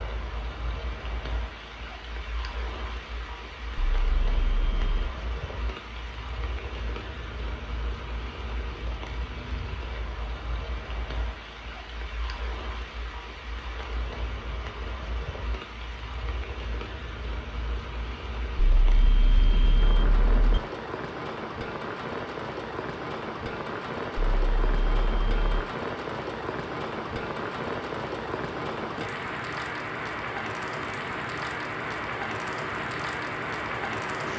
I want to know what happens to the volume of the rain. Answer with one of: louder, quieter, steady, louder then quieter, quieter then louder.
louder.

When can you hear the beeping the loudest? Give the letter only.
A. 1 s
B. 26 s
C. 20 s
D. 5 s
C.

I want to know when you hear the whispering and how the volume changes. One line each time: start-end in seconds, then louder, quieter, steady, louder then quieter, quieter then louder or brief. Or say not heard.
not heard.